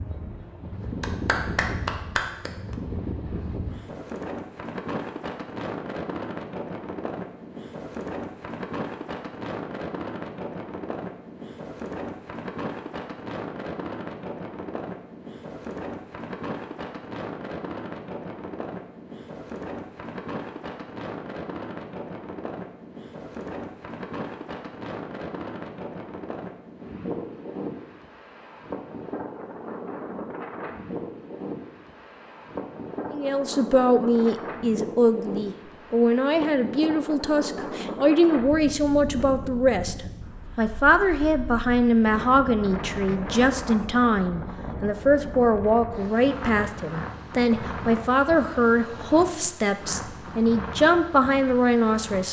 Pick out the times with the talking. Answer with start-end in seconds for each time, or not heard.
33.1-52.2.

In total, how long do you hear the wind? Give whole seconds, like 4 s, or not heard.
52 s.